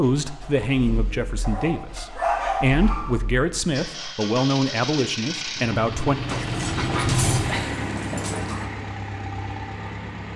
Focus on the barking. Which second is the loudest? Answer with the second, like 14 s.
2 s.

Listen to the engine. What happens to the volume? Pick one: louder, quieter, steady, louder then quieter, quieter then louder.
louder then quieter.